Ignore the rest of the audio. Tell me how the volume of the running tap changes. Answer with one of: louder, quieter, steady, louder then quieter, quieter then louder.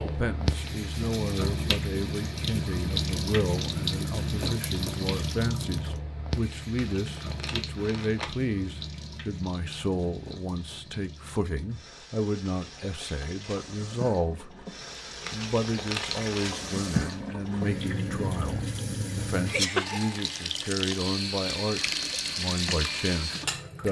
quieter then louder.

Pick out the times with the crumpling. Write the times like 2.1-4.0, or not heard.
6.8-8.3, 15.2-16.4.